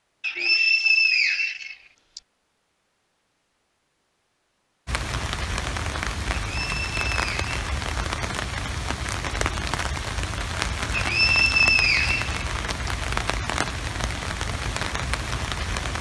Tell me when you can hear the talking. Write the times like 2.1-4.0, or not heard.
not heard.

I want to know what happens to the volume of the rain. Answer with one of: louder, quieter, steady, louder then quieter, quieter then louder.
steady.